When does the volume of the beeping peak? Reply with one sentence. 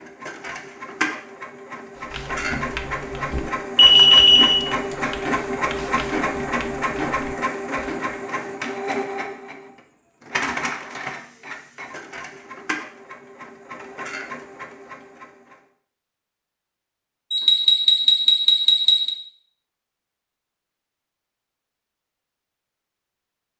The loudest moment of the beeping is at 4 seconds.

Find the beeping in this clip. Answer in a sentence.
You can hear the beeping from 3.3 to 4.5 s and from 17.3 to 19.1 s.